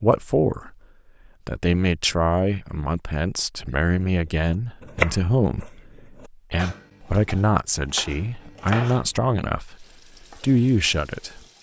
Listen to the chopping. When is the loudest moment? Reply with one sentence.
The volume of the chopping peaks at 5 seconds.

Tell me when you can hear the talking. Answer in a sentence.
The talking can be heard from 0.0 to 0.8 s and from 1.4 to 11.4 s.